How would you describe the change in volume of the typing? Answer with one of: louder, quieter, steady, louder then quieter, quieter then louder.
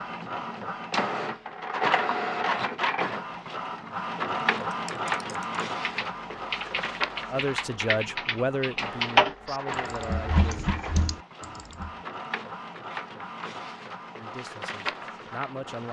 louder then quieter.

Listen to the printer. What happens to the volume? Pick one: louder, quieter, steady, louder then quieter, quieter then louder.
quieter.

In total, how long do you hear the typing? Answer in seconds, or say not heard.
7 s.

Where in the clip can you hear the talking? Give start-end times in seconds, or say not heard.
7.2-10.7, 14.2-15.8.